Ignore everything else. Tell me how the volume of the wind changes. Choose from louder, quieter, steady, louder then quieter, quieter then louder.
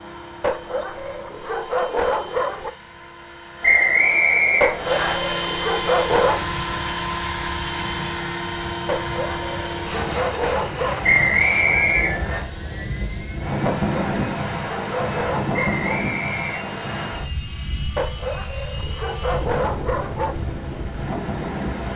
louder then quieter.